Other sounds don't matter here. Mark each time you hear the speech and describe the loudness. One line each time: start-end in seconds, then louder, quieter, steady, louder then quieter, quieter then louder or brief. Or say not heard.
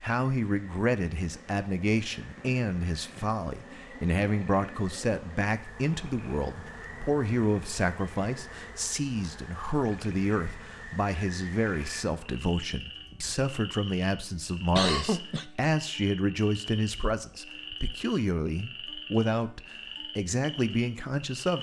0.0-21.5 steady.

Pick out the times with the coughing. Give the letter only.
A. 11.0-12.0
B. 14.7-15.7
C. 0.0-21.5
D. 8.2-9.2
B.